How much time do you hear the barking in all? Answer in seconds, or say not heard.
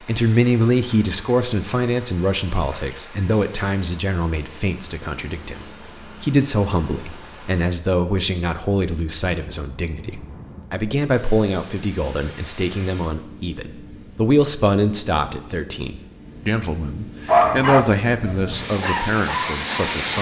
3 s.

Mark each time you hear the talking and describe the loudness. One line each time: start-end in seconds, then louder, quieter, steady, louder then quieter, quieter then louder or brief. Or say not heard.
0.0-20.1 steady.